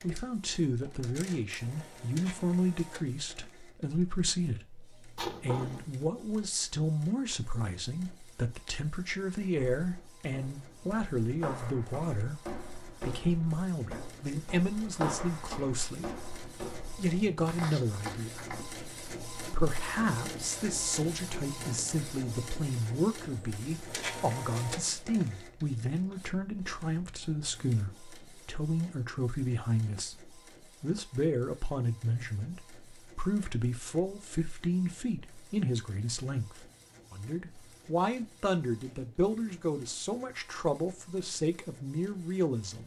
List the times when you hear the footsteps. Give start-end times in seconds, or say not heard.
9.8-18.6.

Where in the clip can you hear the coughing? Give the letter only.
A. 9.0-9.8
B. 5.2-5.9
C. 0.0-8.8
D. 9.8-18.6
B.